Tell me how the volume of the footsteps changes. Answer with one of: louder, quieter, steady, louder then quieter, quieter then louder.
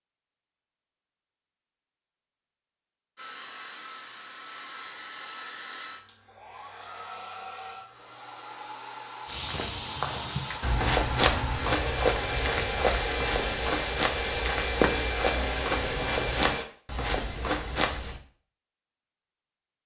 quieter.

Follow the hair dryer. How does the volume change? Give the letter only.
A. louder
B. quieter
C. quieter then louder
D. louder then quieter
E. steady
A.